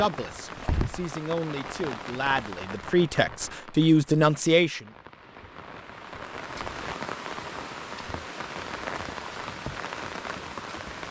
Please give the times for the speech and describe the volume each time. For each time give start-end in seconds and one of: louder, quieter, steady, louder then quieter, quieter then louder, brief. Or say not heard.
0.0-4.8 louder.